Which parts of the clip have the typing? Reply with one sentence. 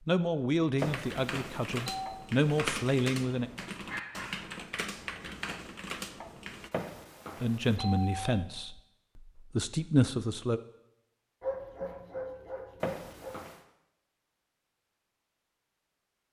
The typing can be heard from 0.8 to 6.7 s.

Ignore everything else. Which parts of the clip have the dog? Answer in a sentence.
You can hear the dog from 3.9 to 4.5 s and from 11.4 to 13.3 s.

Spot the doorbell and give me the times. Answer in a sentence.
You can hear the doorbell from 0.8 to 2.2 s, from 6.7 to 8.3 s and from 12.8 to 13.6 s.